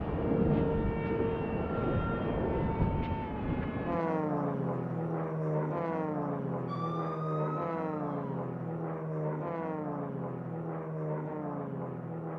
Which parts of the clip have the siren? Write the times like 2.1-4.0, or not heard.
6.7-8.4.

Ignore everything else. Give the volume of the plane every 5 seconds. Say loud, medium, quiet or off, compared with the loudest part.
loud, loud, medium.